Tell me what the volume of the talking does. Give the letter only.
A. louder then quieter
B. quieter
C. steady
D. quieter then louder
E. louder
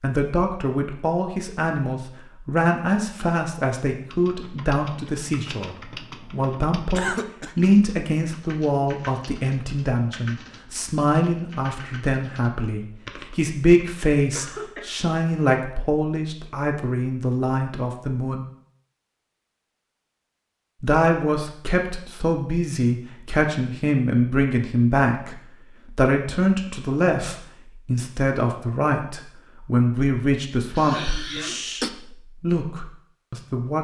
C.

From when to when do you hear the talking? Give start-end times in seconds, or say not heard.
0.0-18.4, 20.8-33.7.